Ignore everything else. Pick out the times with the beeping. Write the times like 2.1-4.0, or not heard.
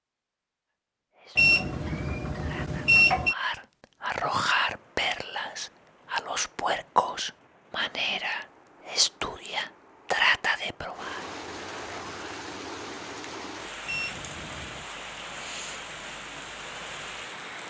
1.4-3.4, 13.8-14.8.